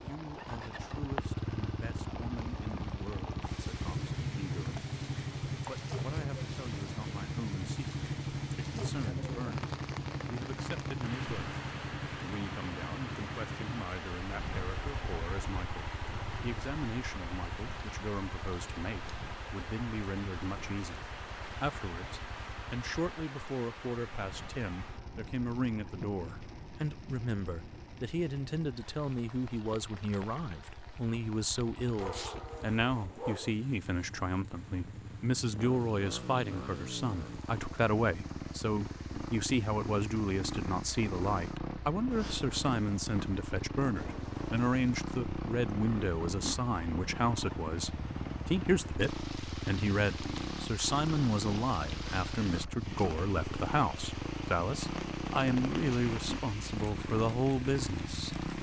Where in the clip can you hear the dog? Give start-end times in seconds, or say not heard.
32.0-33.5.